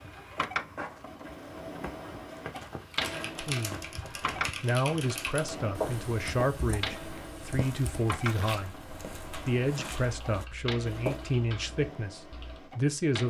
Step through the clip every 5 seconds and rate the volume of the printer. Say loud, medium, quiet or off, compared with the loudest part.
loud, loud, medium.